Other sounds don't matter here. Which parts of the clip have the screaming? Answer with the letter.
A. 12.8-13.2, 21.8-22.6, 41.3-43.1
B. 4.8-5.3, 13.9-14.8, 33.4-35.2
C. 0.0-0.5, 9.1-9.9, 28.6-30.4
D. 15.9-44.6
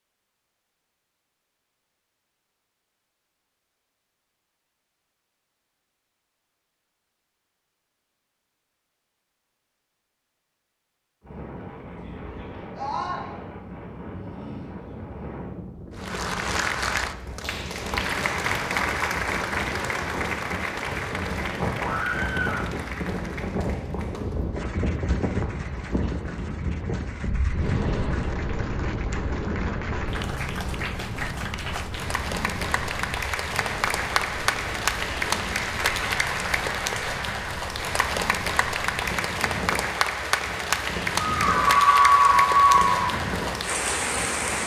A.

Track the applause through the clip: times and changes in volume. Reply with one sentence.
The applause can be heard from 15.9 to 44.6 s, getting quieter then louder.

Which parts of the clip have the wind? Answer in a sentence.
The wind can be heard from 11.2 to 44.6 s.